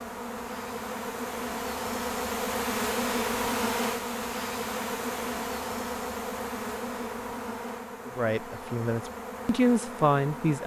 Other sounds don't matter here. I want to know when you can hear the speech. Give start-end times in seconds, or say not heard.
8.1-10.6.